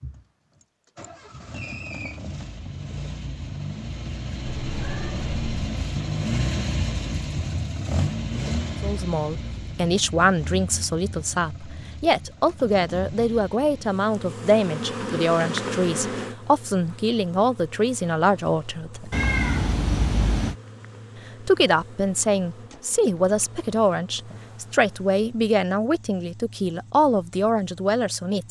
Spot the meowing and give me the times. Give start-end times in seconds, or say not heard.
4.5-5.5, 19.1-20.6.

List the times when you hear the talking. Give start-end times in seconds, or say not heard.
8.8-19.1, 21.4-28.4.